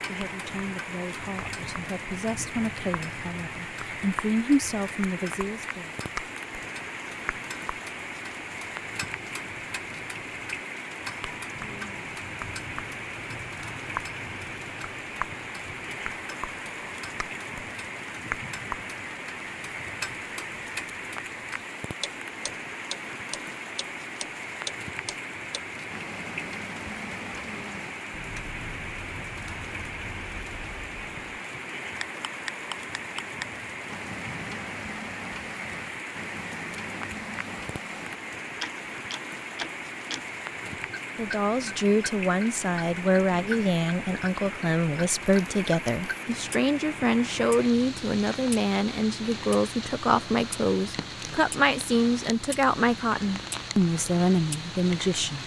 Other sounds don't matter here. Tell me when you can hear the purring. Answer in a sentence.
The purring can't be heard in this clip.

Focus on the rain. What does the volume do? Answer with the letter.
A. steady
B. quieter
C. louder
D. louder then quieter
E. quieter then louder
A.